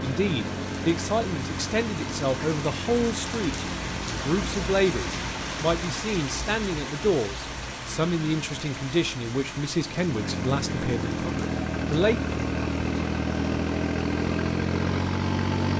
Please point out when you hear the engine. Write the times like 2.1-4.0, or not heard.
0.0-5.5, 9.8-15.7.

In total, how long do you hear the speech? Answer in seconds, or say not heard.
12 s.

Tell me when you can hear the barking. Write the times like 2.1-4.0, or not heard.
not heard.